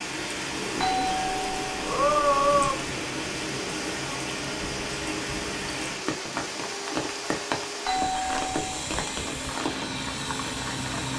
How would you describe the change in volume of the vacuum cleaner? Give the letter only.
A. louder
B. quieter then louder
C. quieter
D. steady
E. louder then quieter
D.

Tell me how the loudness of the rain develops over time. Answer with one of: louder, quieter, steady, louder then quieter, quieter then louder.
steady.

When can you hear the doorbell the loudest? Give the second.
2 s.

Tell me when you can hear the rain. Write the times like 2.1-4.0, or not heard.
0.0-11.1.